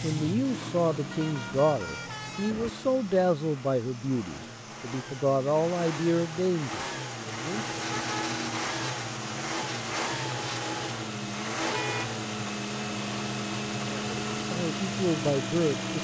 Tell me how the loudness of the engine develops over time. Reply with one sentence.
The loudness of the engine goes up.